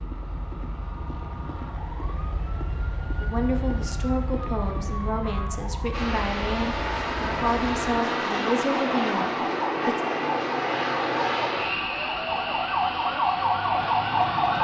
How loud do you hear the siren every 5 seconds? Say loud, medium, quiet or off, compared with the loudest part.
medium, medium, loud.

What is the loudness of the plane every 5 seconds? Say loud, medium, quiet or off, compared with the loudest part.
off, loud, loud.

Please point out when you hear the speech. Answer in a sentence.
You can hear the speech from 3.2 to 10.0 s.